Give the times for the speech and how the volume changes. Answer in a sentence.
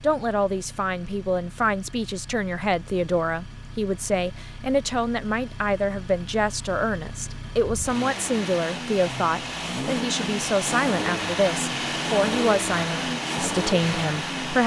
The speech can be heard from 0.0 to 14.6 s, at a steady volume.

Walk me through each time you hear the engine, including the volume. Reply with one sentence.
You can hear the engine from 0.0 to 14.6 s, getting louder.